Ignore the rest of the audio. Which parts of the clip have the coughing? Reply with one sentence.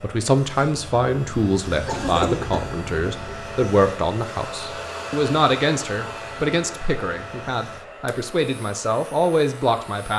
You can hear the coughing from 1.9 to 2.9 s.